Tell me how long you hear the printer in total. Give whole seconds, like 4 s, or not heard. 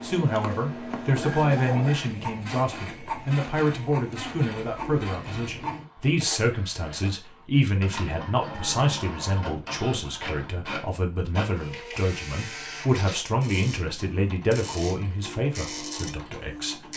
17 s.